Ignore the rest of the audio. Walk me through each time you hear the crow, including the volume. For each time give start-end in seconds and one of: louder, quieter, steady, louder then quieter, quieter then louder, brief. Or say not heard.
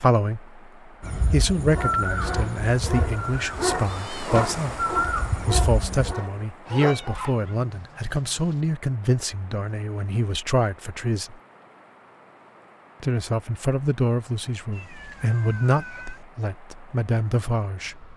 1.0-6.2 quieter then louder.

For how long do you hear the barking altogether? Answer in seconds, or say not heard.
6 s.